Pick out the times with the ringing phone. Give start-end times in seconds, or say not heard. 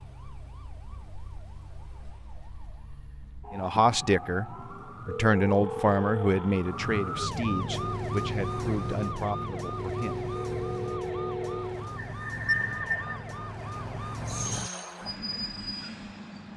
5.0-6.7, 10.3-11.9.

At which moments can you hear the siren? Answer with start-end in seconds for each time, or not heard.
0.0-15.2.